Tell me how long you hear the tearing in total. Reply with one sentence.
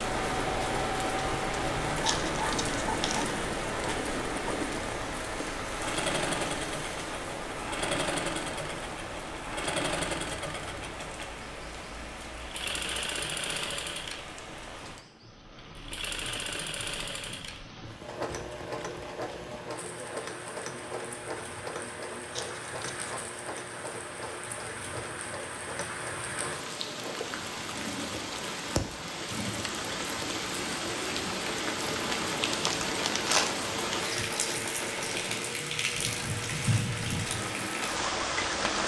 The tearing can be heard for 3 seconds in total.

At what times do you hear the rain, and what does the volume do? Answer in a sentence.
The rain can be heard from 0.0 to 38.8 s, getting quieter then louder.